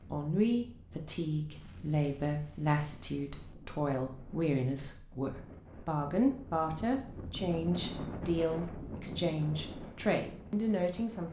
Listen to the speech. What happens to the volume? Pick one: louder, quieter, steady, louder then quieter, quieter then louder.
steady.